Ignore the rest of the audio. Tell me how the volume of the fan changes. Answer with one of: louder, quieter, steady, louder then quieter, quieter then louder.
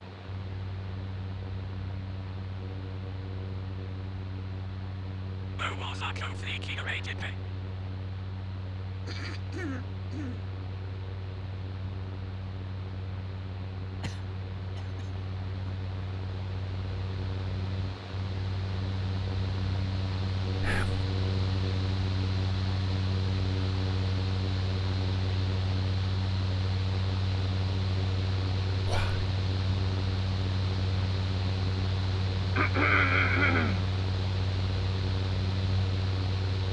louder.